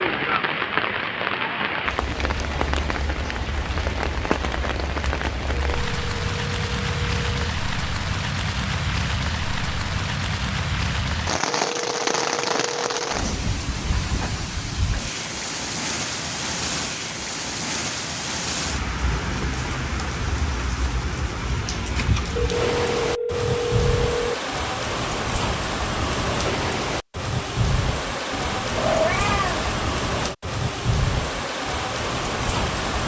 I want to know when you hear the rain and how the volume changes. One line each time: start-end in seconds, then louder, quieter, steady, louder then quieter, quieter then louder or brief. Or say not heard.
0.0-33.0 steady.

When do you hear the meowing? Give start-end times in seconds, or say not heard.
28.3-29.7.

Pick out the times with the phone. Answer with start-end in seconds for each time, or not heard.
5.5-7.5, 11.6-13.1, 22.4-24.4.